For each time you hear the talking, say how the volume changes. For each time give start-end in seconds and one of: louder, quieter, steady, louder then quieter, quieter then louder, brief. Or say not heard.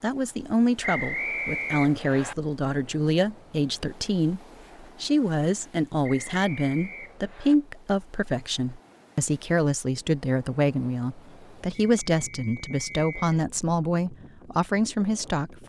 0.0-15.6 steady.